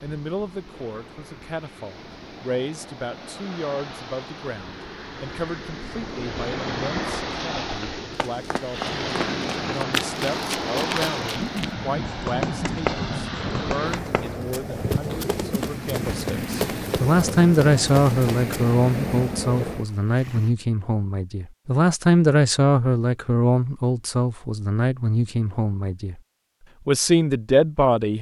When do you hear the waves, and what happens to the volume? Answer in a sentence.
The waves can be heard from 0.0 to 20.5 s, getting louder.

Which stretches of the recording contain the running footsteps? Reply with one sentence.
You can hear the running footsteps from 8.2 to 18.6 s.